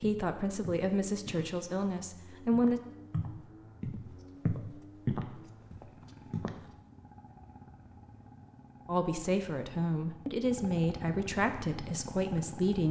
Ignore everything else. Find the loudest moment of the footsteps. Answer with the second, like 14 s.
5 s.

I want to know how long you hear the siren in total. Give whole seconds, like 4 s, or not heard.
not heard.